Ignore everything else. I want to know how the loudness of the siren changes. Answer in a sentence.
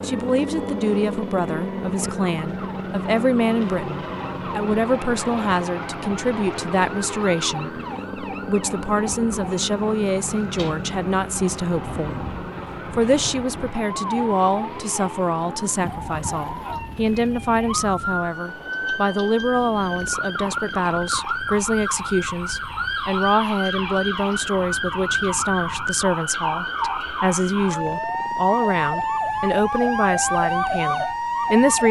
The loudness of the siren goes up.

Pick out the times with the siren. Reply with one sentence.
You can hear the siren from 0.0 to 31.8 s.